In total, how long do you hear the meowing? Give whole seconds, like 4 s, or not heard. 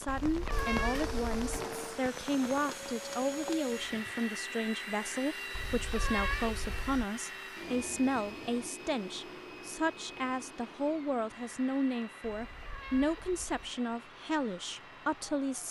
4 s.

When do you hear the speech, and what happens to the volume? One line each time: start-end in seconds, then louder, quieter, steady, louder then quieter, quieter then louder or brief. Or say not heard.
0.0-15.6 steady.